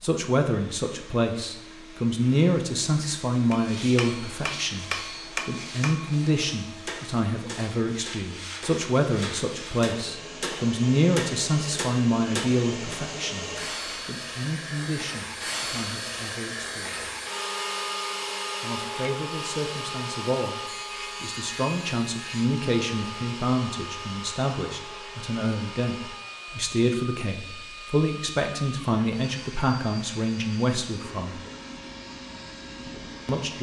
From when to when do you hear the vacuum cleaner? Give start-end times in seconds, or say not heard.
0.0-33.5.